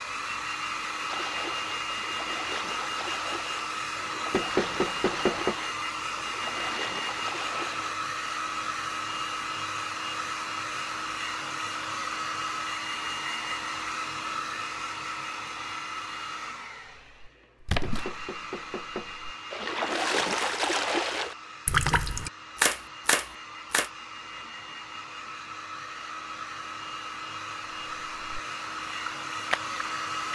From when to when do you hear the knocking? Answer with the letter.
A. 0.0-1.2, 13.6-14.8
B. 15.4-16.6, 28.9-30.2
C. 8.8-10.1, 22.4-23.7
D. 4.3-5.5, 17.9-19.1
D.